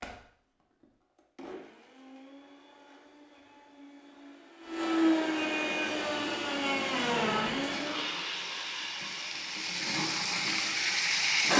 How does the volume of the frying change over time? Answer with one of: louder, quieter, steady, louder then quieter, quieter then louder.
louder.